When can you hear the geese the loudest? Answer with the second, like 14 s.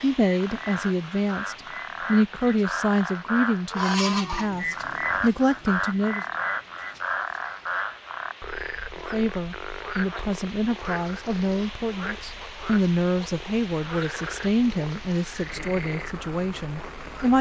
4 s.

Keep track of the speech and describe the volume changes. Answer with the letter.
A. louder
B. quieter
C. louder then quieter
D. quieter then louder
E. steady
E.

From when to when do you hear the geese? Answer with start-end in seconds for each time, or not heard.
3.7-5.3.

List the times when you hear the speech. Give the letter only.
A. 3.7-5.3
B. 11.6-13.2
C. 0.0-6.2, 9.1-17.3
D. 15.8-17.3
C.